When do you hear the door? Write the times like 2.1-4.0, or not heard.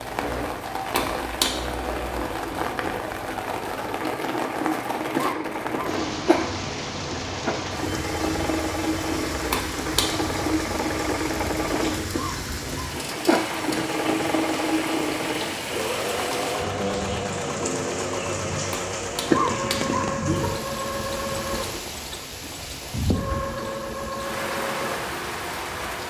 not heard.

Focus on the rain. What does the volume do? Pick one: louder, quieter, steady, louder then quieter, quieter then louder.
steady.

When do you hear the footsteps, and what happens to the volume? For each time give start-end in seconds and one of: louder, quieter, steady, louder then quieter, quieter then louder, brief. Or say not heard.
not heard.